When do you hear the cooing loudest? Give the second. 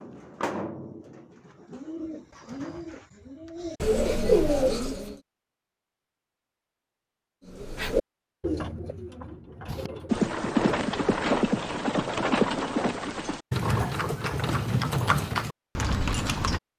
4 s.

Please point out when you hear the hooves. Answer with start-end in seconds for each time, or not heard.
9.7-16.6.